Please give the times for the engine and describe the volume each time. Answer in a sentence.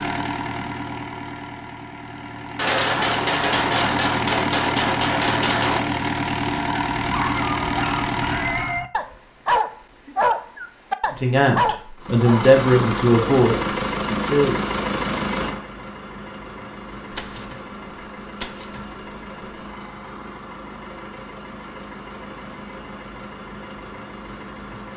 The engine can be heard from 0.0 to 8.8 s, getting louder; and from 11.9 to 24.9 s, getting quieter.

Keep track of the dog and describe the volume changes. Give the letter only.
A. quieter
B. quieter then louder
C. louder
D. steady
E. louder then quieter
C.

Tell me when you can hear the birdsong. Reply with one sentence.
The birdsong can't be heard in this clip.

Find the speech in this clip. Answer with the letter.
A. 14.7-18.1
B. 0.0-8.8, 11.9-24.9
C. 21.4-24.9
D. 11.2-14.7
D.